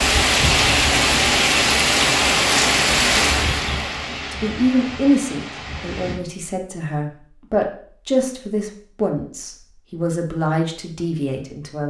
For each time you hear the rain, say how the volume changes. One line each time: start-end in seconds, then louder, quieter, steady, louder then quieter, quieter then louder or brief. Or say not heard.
0.0-6.2 quieter.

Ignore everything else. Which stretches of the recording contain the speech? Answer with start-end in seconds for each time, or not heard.
4.3-11.8.